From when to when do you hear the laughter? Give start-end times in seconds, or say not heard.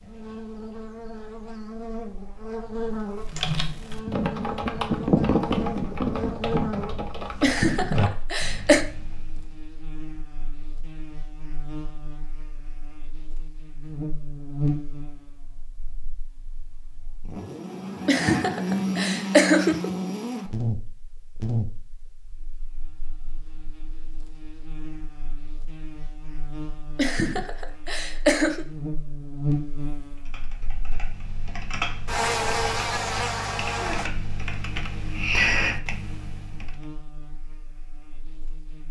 7.4-8.8, 18.1-19.9, 26.9-28.6.